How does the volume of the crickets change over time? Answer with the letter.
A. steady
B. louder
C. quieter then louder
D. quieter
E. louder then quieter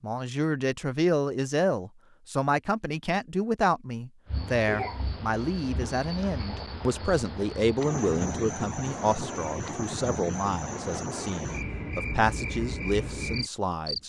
A.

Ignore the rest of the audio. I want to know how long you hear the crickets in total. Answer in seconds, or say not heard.
10 s.